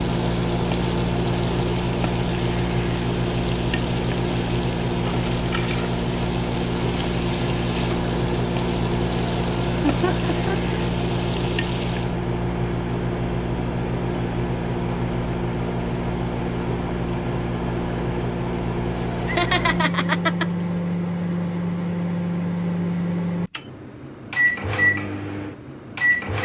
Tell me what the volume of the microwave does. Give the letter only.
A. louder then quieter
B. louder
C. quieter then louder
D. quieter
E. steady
E.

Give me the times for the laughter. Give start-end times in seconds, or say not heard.
9.8-10.8, 19.2-20.4.